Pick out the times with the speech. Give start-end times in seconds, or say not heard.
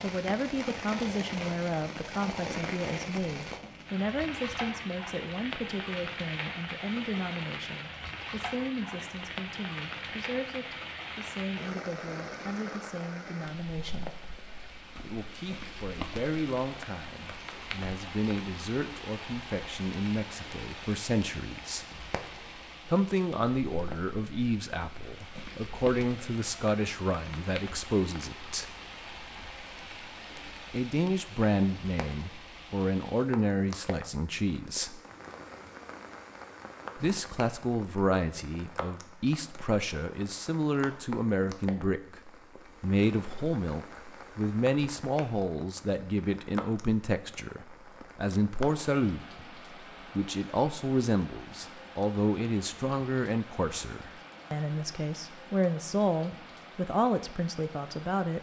0.0-14.1, 15.0-21.9, 22.9-28.7, 30.7-35.0, 37.0-49.2, 50.1-58.3.